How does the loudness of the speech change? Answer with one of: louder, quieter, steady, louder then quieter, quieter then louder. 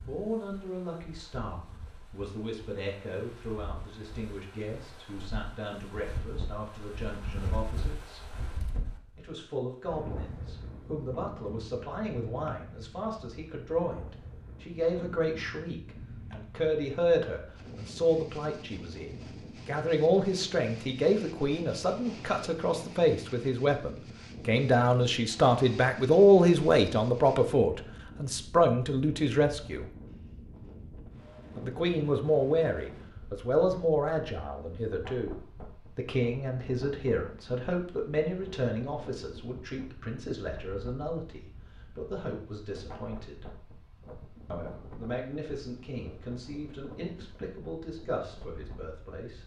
louder then quieter.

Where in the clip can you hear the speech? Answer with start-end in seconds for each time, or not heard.
0.1-8.2, 9.2-29.9, 31.6-43.5, 44.5-49.4.